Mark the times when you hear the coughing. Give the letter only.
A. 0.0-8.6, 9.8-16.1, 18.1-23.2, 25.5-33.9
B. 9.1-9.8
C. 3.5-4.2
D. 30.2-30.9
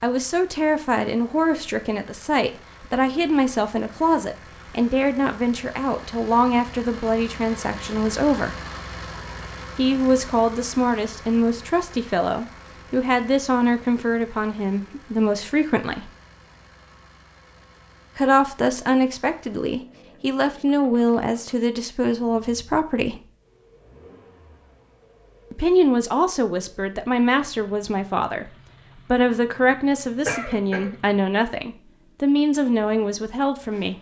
D.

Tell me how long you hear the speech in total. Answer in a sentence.
The speech can be heard for 28 seconds in total.